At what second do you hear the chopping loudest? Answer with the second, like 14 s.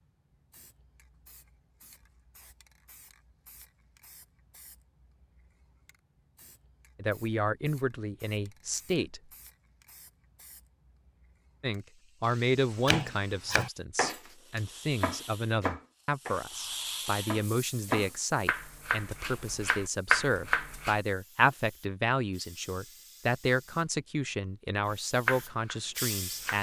20 s.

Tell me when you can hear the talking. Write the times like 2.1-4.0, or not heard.
7.0-9.2, 11.6-26.5.